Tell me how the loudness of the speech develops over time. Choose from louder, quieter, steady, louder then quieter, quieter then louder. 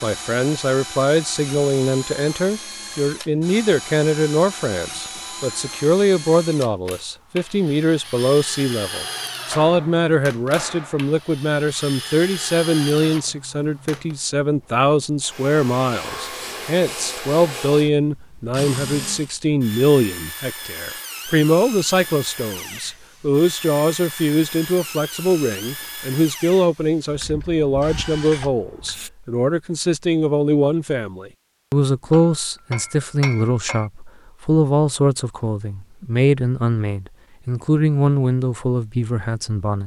steady.